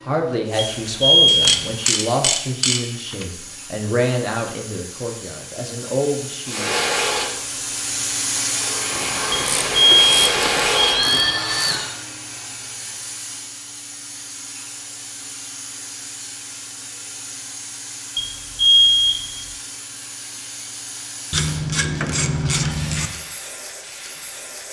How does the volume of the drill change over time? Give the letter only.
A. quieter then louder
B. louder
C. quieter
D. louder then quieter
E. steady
A.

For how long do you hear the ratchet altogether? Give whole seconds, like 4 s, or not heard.
7 s.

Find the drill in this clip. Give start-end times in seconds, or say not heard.
6.5-11.9.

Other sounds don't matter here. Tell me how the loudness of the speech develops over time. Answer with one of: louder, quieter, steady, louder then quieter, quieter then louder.
steady.